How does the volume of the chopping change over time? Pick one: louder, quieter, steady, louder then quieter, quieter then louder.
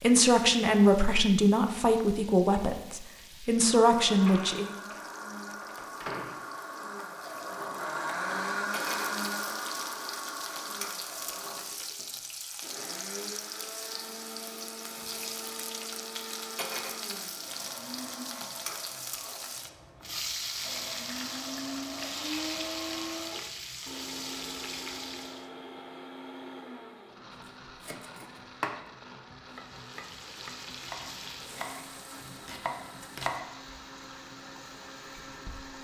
quieter then louder.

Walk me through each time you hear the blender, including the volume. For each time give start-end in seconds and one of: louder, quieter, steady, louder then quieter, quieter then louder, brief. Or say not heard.
3.8-35.7 quieter.